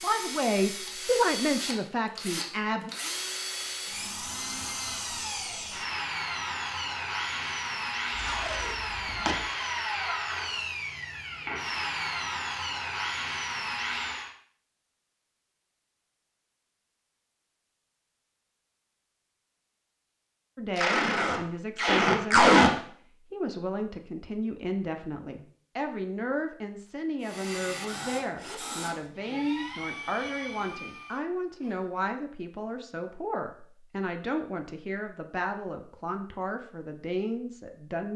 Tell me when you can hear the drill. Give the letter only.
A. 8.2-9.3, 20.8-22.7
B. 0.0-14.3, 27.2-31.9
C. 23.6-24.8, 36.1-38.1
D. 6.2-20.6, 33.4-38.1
B.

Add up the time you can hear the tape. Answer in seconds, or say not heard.
3 s.